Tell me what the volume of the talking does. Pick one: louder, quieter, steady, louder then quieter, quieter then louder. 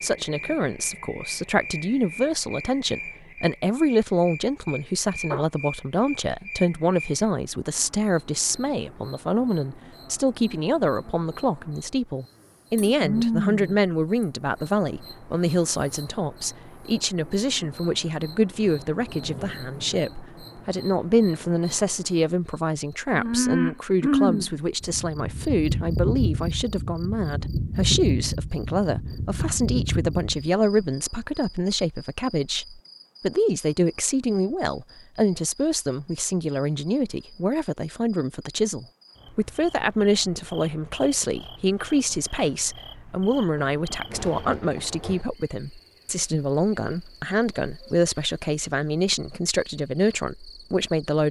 steady.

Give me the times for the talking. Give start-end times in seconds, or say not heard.
0.0-51.2.